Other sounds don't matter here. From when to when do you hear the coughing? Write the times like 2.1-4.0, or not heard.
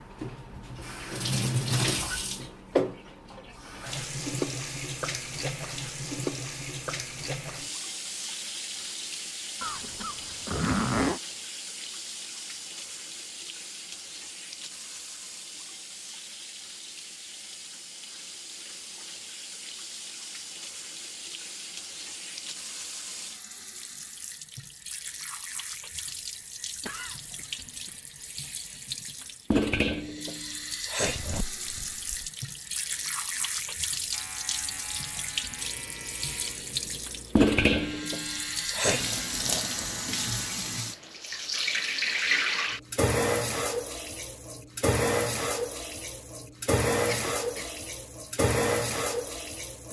9.6-10.7, 26.8-28.0, 47.0-47.8.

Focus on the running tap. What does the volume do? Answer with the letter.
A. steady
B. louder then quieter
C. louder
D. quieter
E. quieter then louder
E.